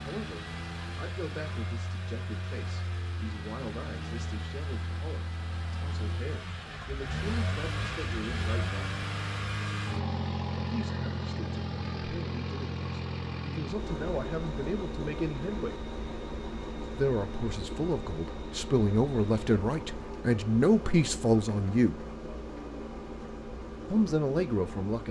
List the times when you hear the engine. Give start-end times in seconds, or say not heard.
0.0-25.0.